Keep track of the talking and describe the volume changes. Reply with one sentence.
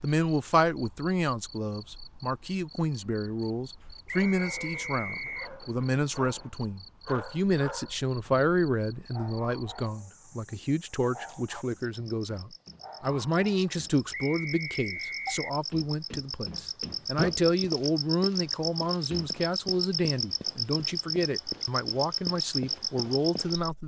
The volume of the talking stays about the same.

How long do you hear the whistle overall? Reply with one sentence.
You can hear the whistle for 3 seconds altogether.